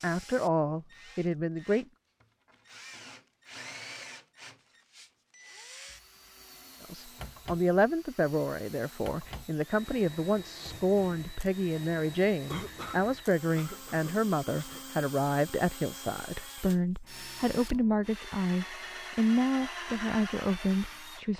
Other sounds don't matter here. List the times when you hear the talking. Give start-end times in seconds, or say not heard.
0.0-1.9, 6.8-21.3.